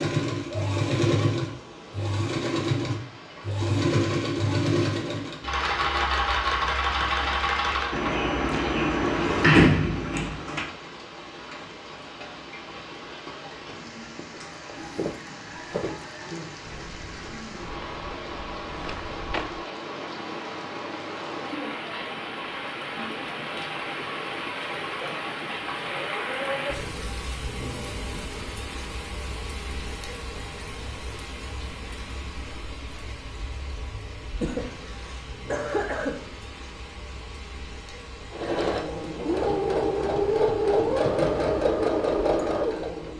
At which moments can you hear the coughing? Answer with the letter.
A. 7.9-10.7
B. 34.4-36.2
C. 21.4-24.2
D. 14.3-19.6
B.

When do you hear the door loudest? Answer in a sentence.
The loudest moment of the door is at 10 seconds.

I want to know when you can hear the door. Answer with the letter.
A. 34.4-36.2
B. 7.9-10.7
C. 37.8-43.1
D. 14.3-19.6
B.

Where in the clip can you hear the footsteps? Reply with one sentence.
The footsteps can be heard from 14.3 to 19.6 s.